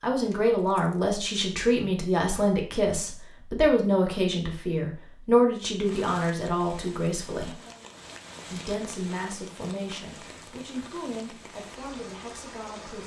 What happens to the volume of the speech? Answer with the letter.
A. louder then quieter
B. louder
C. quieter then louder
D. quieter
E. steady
D.